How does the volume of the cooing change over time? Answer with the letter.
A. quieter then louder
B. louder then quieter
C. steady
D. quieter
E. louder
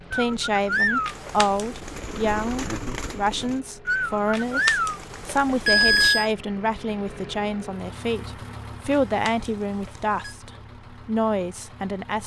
A.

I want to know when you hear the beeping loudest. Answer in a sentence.
The volume of the beeping peaks at 6 seconds.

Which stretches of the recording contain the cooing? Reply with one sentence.
The cooing can be heard from 0.1 to 6.1 s.